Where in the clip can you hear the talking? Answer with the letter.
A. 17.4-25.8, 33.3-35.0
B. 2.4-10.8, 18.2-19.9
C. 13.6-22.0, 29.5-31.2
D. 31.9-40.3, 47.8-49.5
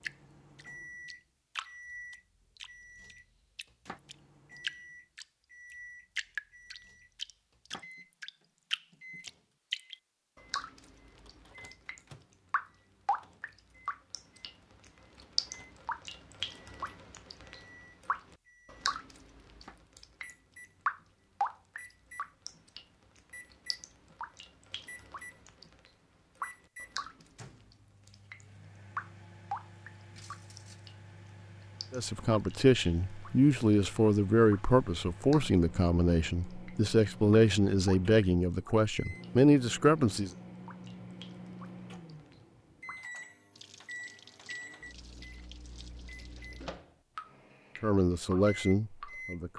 D.